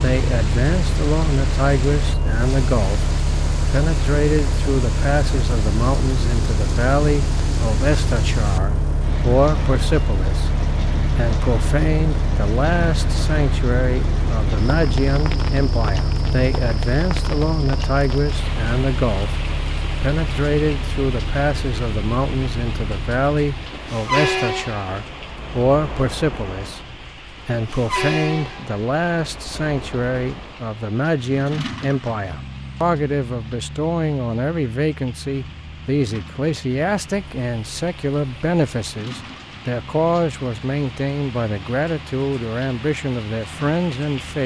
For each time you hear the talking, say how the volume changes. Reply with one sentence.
The talking can be heard from 0.0 to 44.4 s, at a steady volume.